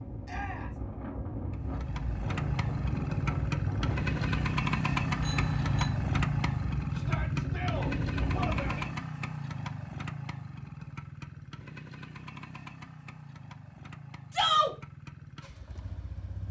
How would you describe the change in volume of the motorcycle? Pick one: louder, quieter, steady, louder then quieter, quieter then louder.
quieter.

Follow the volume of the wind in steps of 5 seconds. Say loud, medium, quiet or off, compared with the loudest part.
loud, loud, off, off.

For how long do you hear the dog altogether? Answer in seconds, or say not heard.
not heard.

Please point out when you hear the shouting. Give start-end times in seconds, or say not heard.
0.2-0.7, 6.9-8.8, 14.3-14.8.